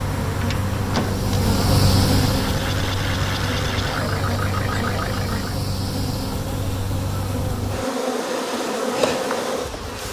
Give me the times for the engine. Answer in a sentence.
The engine can be heard from 0.0 to 5.5 s.